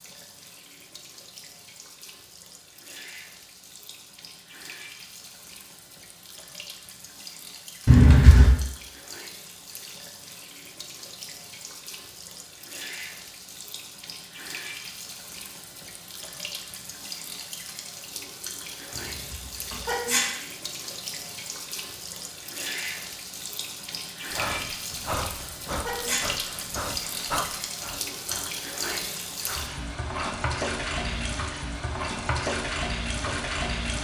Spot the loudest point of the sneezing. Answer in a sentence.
The loudest moment of the sneezing is at 8 seconds.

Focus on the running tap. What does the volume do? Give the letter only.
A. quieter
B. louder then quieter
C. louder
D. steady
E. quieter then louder
C.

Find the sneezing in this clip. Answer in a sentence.
The sneezing can be heard from 7.8 to 8.5 s, from 18.9 to 20.4 s and from 24.9 to 26.4 s.